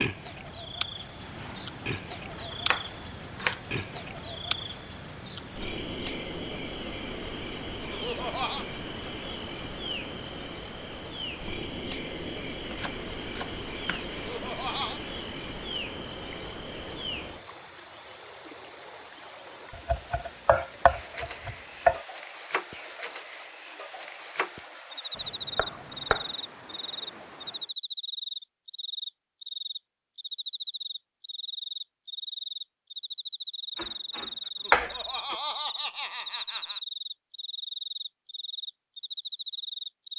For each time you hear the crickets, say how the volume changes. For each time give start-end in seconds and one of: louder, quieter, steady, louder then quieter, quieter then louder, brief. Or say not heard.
0.0-40.1 steady.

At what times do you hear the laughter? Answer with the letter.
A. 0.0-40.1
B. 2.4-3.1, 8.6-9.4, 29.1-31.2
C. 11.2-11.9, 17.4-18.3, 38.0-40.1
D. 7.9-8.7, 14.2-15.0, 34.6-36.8
D.